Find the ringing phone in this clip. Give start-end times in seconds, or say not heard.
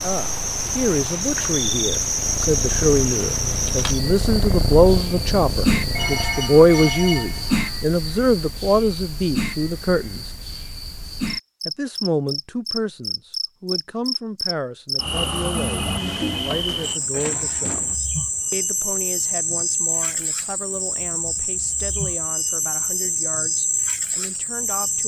5.9-7.8, 15.6-18.0.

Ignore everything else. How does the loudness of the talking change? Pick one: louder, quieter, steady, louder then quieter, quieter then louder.
quieter.